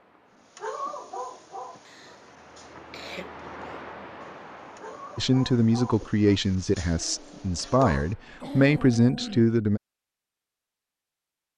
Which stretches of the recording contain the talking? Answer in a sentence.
The talking can be heard from 5.2 to 9.8 s.